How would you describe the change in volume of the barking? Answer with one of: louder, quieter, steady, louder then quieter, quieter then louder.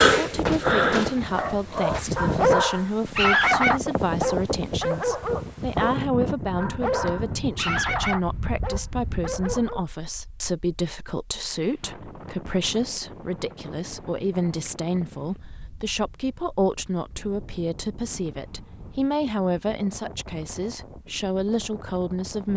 quieter.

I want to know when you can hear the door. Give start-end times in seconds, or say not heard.
0.5-2.2.